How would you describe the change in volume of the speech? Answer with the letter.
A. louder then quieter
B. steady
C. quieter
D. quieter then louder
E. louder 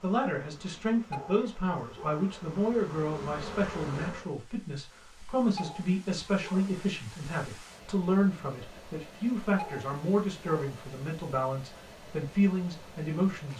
B.